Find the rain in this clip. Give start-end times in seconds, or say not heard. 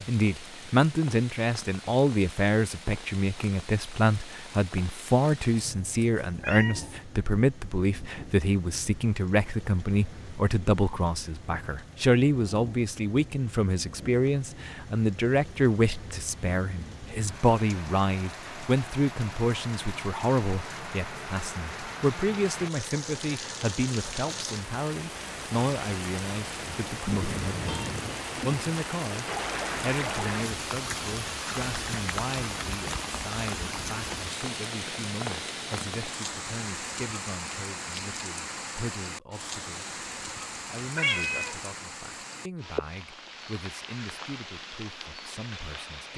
0.0-46.1.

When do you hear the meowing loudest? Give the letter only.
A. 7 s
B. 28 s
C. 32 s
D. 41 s
D.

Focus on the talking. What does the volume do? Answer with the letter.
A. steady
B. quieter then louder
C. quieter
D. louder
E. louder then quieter
C.